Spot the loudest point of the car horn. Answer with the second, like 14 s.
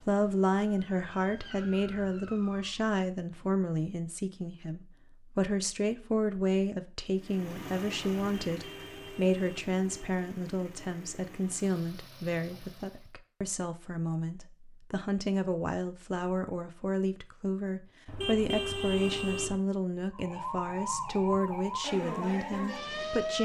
19 s.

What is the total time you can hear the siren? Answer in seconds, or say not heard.
6 s.